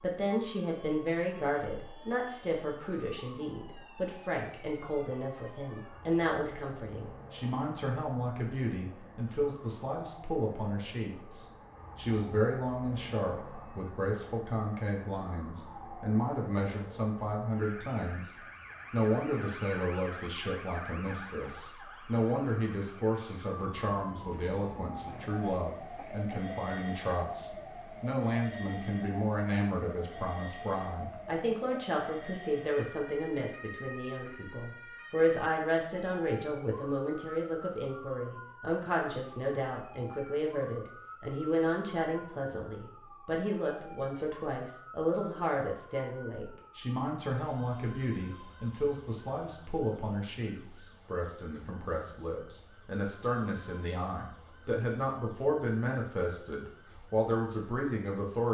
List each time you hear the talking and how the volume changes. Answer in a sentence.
You can hear the talking from 0.0 to 58.4 s, at a steady volume.